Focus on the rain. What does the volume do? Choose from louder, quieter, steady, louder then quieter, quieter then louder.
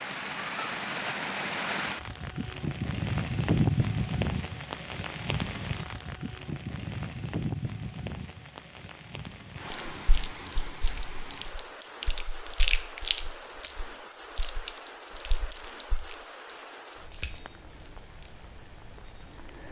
quieter.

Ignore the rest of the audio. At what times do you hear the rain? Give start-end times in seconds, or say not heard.
0.0-19.6.